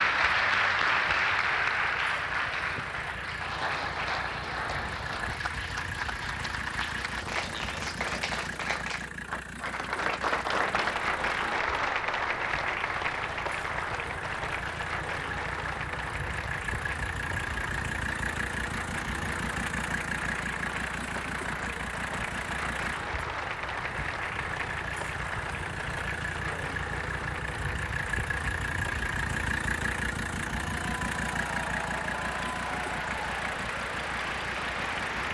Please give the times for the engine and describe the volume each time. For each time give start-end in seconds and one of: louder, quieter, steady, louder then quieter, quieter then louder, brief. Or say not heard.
0.1-35.3 louder.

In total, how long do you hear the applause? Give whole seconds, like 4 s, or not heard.
35 s.